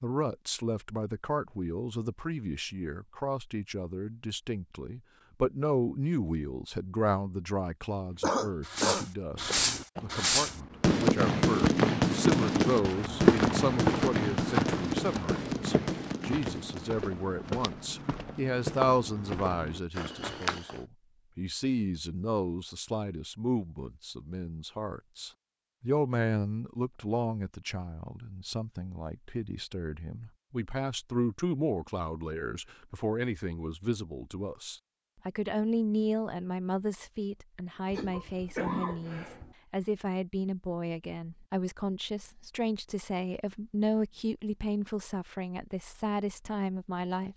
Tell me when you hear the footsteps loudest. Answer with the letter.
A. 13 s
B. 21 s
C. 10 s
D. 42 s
A.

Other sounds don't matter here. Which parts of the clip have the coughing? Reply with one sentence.
The coughing can be heard from 8.2 to 9.1 s and from 37.9 to 39.5 s.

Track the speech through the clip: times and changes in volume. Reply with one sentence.
The speech can be heard from 0.0 to 47.3 s, at a steady volume.